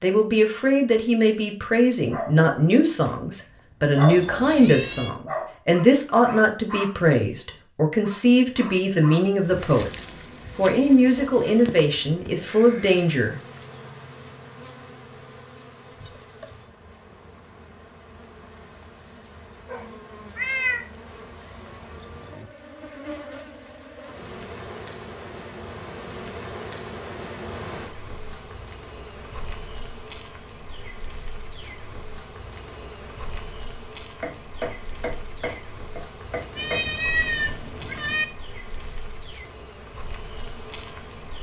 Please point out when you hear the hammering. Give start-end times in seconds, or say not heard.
34.2-36.9.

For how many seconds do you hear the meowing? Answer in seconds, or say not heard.
4 s.